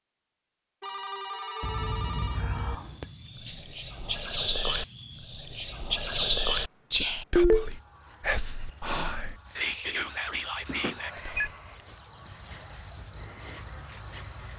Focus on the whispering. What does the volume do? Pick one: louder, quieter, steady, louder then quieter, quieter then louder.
louder then quieter.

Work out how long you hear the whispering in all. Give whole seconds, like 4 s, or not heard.
9 s.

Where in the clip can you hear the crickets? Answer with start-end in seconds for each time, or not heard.
2.7-14.5.